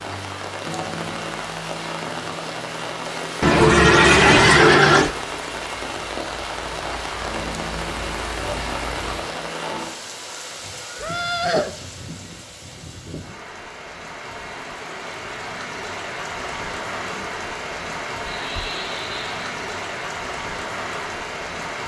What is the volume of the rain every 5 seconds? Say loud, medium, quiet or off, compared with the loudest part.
loud, loud, medium, loud, loud.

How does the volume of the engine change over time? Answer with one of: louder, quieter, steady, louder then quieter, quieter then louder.
louder.